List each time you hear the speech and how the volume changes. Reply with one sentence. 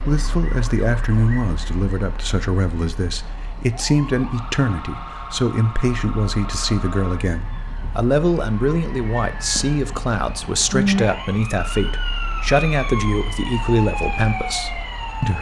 The speech can be heard from 0.1 to 15.3 s, at a steady volume.